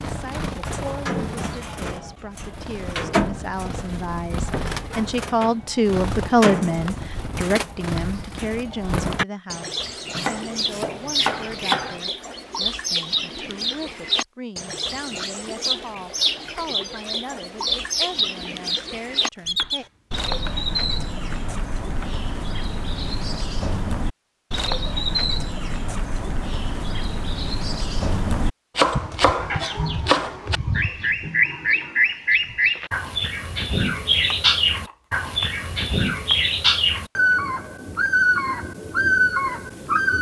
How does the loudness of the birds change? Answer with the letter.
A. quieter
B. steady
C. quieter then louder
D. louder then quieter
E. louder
E.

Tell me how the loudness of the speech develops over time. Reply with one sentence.
The loudness of the speech goes up, then down.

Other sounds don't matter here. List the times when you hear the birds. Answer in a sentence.
You can hear the birds from 0.0 to 40.1 s.